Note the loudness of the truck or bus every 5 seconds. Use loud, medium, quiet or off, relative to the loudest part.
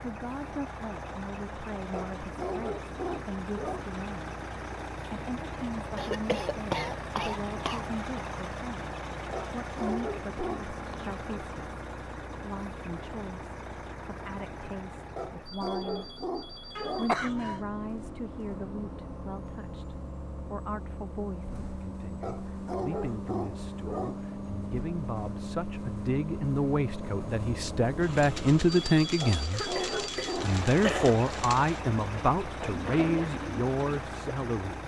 loud, loud, loud, medium, loud, loud, loud.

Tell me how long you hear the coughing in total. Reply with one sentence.
The coughing can be heard for 4 seconds in total.